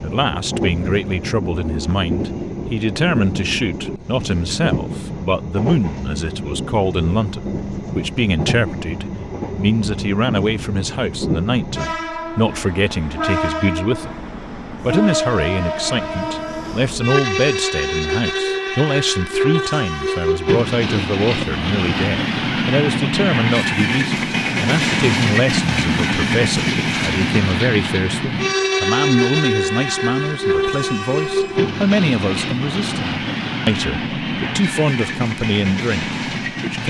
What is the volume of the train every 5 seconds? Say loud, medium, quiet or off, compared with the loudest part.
medium, medium, medium, loud, loud, loud, loud, medium.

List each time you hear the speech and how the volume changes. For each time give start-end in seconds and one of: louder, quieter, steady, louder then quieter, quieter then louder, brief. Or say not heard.
0.0-36.8 steady.